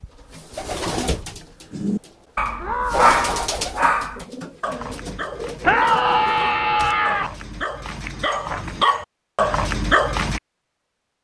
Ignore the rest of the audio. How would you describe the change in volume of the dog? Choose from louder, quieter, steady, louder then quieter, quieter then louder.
quieter then louder.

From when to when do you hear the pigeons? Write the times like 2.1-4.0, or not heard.
0.0-7.0.